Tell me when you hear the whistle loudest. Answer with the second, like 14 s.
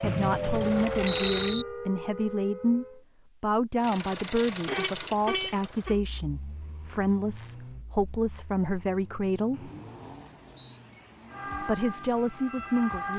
1 s.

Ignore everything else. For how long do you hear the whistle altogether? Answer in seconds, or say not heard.
3 s.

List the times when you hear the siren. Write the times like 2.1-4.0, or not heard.
0.0-3.0, 11.3-13.1.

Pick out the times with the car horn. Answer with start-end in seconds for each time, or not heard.
4.7-6.0.